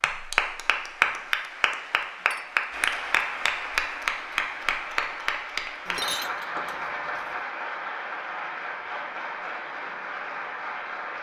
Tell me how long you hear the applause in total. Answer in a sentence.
The applause can be heard for 11 seconds in total.